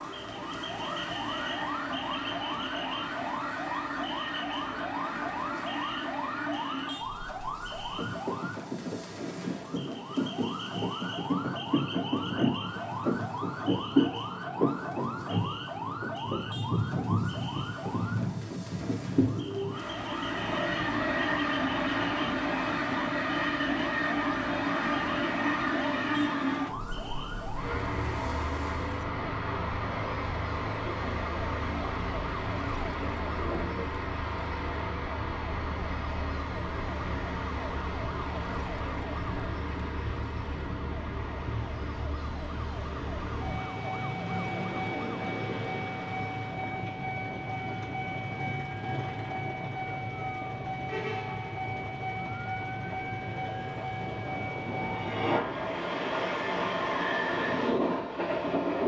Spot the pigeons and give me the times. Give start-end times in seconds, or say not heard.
not heard.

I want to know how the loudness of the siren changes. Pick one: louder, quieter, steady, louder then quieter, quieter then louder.
quieter.